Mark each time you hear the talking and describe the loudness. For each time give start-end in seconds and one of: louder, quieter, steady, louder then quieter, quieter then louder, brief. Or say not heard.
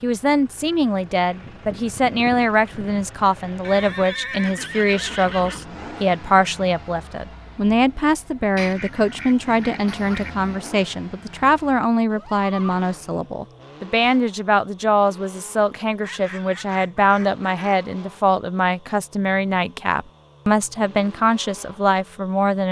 0.0-22.6 steady.